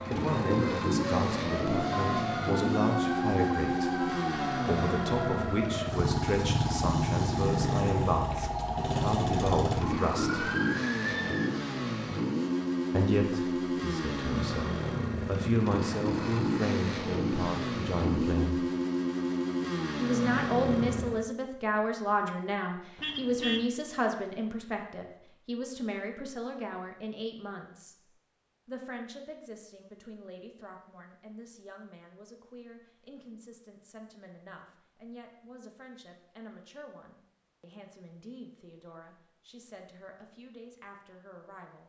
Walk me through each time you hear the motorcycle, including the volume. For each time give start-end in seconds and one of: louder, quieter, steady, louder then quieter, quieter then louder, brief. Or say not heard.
0.0-21.2 steady.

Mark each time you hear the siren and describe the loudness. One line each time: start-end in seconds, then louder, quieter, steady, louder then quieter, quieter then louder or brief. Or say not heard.
0.0-11.5 steady.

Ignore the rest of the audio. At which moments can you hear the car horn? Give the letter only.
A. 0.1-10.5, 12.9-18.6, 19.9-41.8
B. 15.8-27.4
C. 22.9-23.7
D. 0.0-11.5
C.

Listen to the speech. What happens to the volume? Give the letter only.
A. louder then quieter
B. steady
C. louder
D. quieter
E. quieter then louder
D.